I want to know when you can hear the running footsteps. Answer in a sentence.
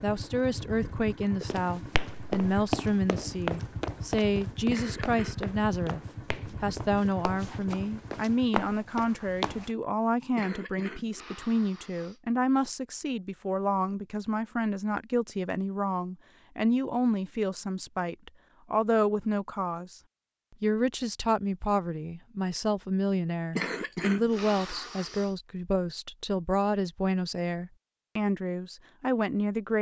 You can hear the running footsteps from 1.5 to 9.7 s.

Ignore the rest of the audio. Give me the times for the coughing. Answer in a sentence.
The coughing can be heard from 4.7 to 5.4 s, from 10.3 to 12.2 s and from 23.6 to 25.4 s.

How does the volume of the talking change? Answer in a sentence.
The volume of the talking stays about the same.